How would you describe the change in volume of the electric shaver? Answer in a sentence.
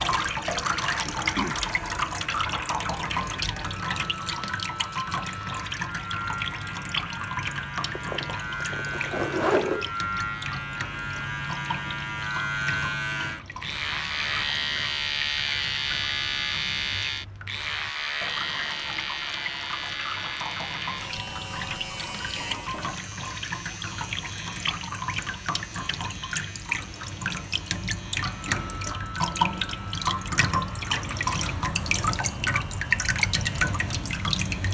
The loudness of the electric shaver goes up, then down.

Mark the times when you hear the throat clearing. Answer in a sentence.
You can hear the throat clearing from 1.1 to 1.6 s and from 28.1 to 28.7 s.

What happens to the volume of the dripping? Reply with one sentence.
The loudness of the dripping goes down, then up.